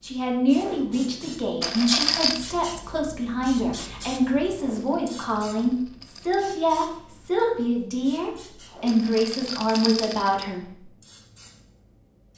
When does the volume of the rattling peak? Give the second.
2 s.